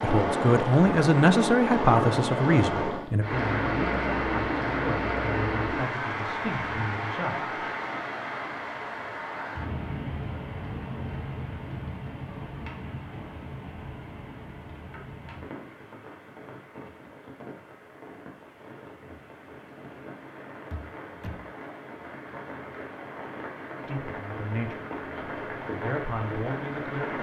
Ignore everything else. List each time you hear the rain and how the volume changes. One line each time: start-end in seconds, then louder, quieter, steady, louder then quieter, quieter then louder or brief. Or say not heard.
0.0-27.1 quieter then louder.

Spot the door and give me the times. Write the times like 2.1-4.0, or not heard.
20.7-21.4.